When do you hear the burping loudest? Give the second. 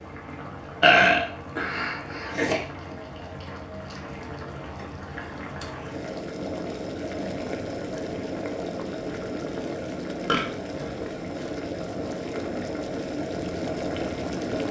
1 s.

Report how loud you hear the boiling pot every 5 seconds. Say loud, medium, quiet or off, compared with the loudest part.
medium, loud, loud.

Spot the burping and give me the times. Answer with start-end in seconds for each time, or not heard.
0.8-2.6, 10.2-11.4.